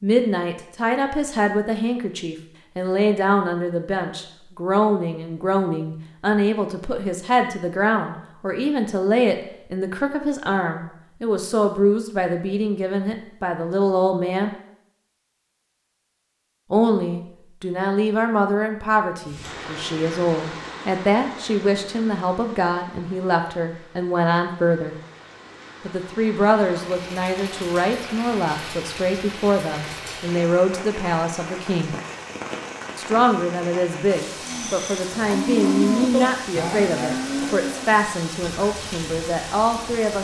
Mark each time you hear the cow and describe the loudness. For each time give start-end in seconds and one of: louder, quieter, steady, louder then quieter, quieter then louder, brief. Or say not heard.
34.4-40.1 quieter.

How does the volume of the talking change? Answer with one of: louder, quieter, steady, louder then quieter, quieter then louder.
steady.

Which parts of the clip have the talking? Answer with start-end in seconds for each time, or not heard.
0.0-14.5, 16.7-24.9, 25.9-31.9, 33.0-40.1.